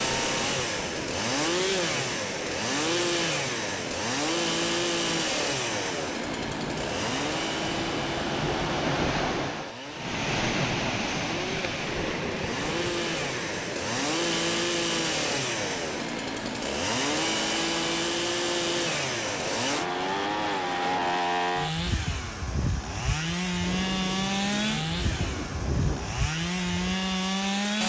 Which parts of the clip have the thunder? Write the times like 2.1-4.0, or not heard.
6.2-9.6, 23.6-26.1.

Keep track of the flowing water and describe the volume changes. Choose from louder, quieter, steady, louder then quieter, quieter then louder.
louder then quieter.